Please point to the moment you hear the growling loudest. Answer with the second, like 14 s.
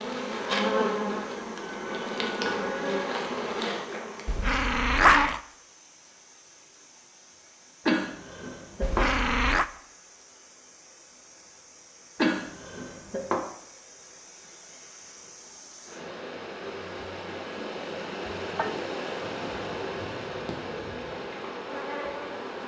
5 s.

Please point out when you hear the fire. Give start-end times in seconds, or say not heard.
not heard.